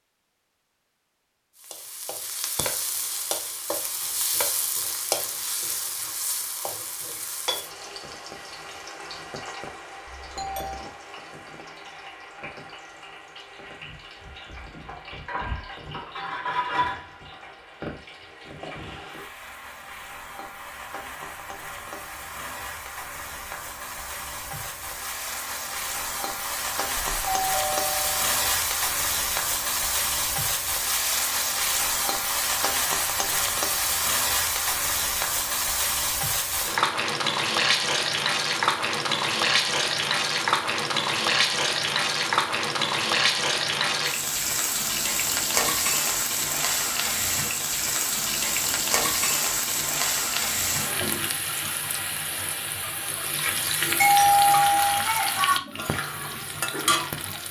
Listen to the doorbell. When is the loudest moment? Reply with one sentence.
The loudest moment of the doorbell is at 54 seconds.